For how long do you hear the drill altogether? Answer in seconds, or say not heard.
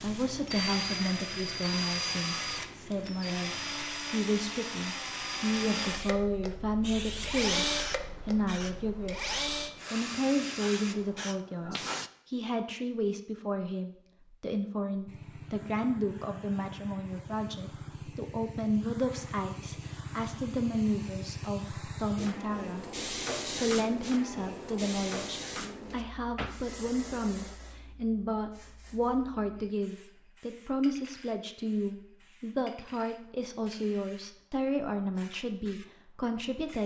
11 s.